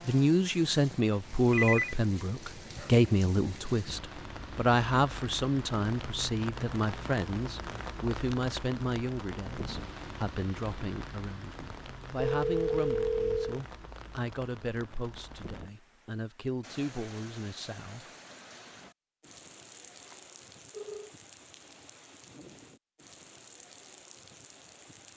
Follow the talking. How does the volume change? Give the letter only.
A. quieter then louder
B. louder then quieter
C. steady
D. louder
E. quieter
E.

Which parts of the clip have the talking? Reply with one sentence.
You can hear the talking from 0.1 to 18.1 s.